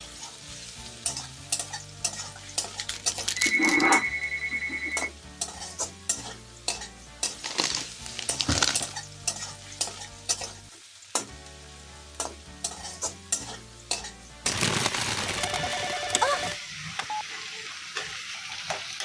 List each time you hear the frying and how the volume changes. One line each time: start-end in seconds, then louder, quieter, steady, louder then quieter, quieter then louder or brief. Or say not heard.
0.0-18.9 steady.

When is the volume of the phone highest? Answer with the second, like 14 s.
4 s.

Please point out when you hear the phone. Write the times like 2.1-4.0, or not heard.
2.4-5.1, 15.3-17.2.